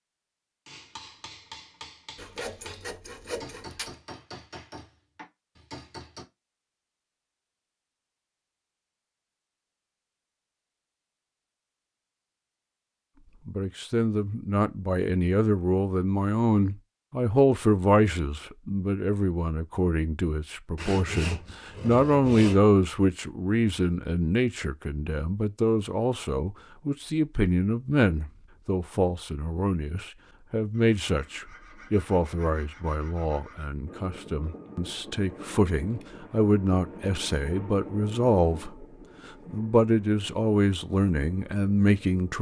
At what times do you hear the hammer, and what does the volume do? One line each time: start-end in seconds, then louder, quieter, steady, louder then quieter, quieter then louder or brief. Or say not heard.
0.7-6.2 steady.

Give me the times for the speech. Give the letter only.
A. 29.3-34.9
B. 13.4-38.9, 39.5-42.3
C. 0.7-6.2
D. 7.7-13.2
B.